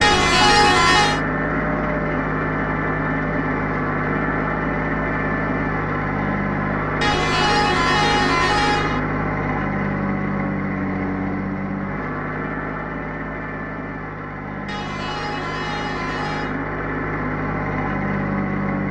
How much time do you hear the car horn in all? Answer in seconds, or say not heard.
5 s.